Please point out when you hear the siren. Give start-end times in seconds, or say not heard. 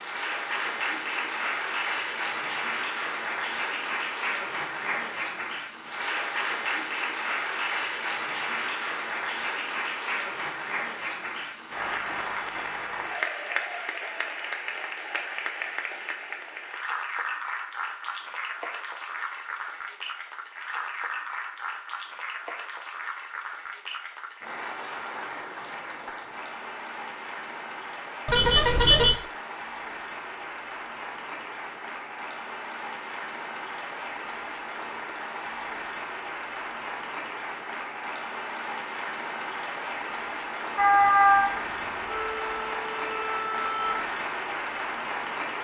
40.8-44.0.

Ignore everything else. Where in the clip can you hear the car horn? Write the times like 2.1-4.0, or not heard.
28.2-29.2.